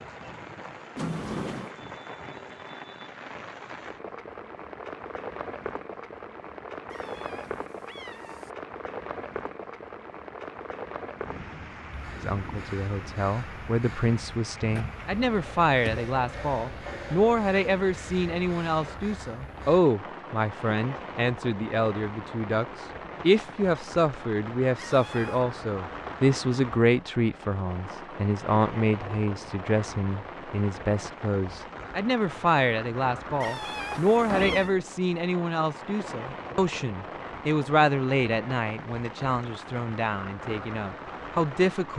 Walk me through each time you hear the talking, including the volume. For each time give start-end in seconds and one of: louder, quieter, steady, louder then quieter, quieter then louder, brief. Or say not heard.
12.2-41.9 steady.